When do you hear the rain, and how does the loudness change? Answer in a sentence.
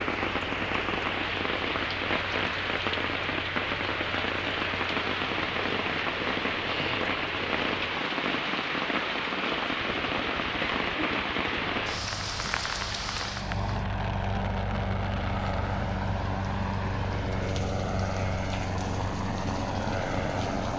You can hear the rain from 0.0 to 20.7 s, getting quieter.